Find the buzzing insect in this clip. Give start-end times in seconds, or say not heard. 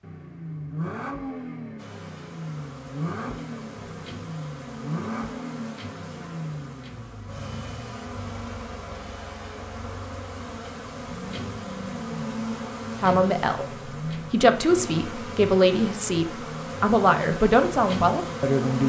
1.8-18.8.